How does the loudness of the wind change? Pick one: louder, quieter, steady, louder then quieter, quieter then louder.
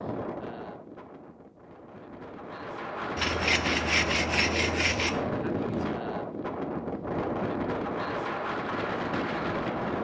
louder.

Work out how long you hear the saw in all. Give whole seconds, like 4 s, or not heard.
2 s.